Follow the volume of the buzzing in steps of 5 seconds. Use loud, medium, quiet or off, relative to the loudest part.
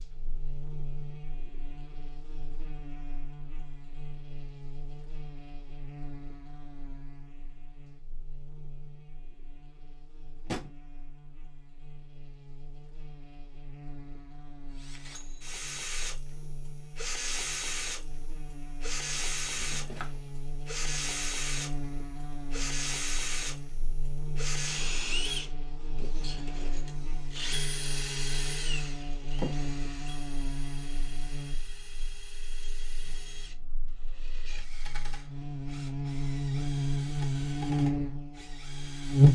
quiet, quiet, quiet, quiet, quiet, quiet, quiet, loud.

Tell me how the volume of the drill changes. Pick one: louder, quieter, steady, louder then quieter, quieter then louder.
quieter.